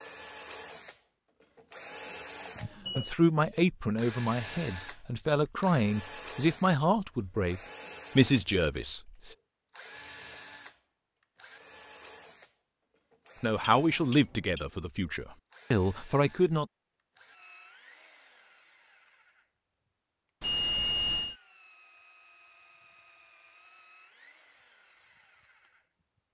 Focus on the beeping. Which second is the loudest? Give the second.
21 s.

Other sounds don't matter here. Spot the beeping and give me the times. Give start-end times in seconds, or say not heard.
2.5-3.1, 13.8-14.7, 20.4-21.4.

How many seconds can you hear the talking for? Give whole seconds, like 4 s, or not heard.
10 s.